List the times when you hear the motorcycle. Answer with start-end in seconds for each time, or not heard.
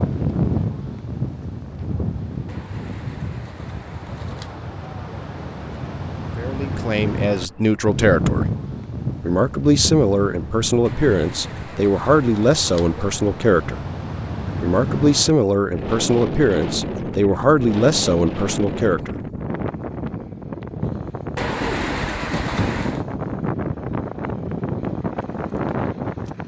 not heard.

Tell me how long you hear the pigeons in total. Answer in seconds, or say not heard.
6 s.